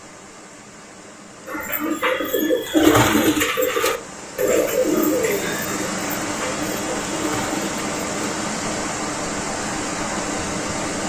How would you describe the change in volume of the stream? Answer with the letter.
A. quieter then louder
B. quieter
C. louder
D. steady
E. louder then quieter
C.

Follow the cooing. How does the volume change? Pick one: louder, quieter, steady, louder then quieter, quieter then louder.
quieter.